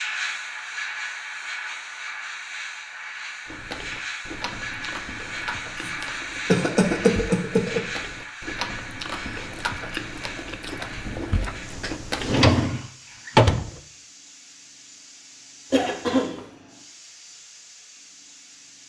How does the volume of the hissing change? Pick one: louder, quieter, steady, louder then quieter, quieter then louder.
quieter.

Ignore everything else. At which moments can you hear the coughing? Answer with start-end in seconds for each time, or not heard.
5.8-7.8, 15.7-16.4.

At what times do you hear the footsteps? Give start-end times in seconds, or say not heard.
not heard.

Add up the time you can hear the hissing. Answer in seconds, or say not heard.
19 s.